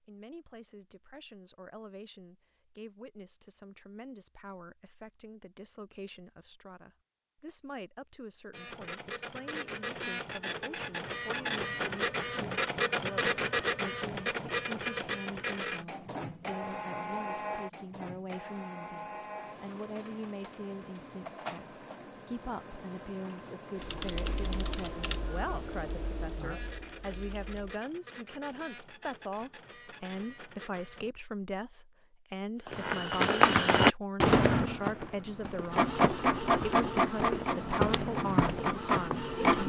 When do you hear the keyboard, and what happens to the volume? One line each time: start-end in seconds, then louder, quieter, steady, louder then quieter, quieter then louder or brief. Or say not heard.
23.8-27.9 quieter.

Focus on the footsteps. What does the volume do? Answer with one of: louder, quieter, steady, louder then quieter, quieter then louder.
quieter then louder.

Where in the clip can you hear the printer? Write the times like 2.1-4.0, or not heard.
8.5-31.1, 35.7-39.6.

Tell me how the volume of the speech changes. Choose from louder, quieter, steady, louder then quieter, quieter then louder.
louder.